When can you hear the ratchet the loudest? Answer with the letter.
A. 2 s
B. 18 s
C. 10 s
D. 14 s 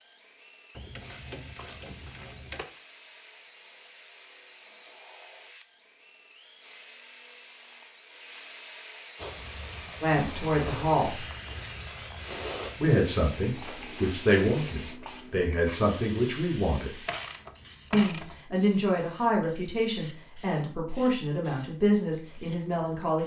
B.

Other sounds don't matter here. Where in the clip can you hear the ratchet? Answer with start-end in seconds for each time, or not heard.
0.8-2.6, 17.1-18.4.